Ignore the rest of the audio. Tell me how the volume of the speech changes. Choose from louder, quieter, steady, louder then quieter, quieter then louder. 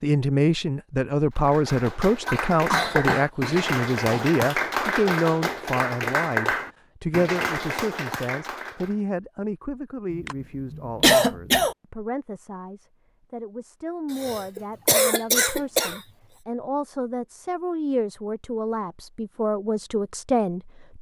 quieter then louder.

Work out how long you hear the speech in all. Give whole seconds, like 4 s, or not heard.
21 s.